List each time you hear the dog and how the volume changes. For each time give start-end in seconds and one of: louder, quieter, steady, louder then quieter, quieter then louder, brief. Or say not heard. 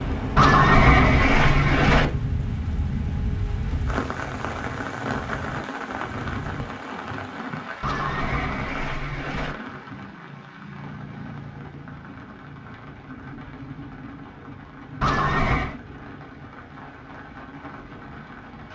not heard.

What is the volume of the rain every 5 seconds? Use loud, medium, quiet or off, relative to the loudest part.
loud, loud, medium, medium.